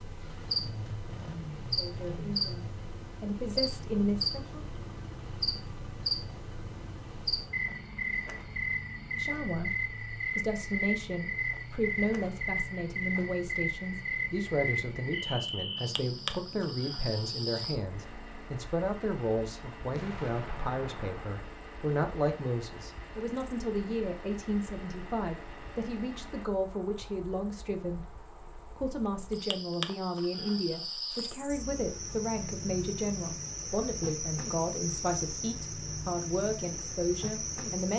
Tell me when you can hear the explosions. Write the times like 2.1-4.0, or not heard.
19.9-21.4.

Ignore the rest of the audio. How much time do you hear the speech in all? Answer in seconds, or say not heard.
32 s.